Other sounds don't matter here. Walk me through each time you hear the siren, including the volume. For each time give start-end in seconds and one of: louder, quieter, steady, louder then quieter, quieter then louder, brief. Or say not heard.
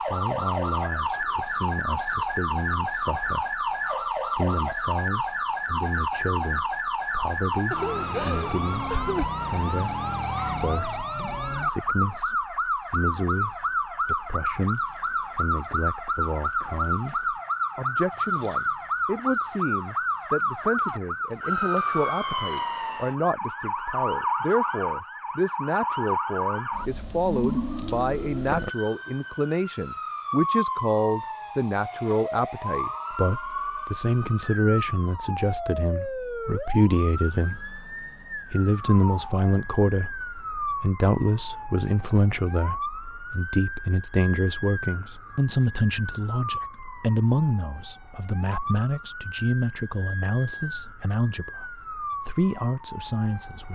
0.0-53.6 quieter.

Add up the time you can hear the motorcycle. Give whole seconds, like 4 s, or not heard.
not heard.